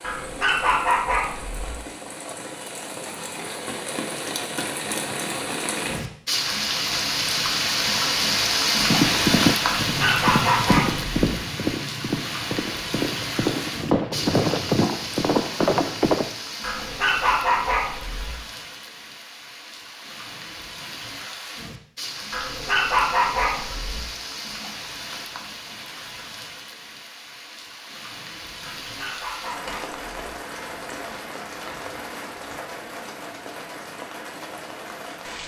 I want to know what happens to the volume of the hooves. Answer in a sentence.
The volume of the hooves goes down, then up.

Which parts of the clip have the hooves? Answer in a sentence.
You can hear the hooves from 8.8 to 16.4 s.